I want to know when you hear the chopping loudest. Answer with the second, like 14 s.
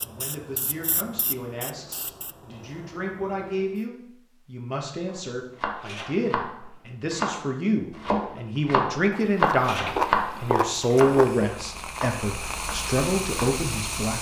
10 s.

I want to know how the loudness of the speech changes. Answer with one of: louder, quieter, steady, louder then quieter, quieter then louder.
louder.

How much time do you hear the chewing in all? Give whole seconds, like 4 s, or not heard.
2 s.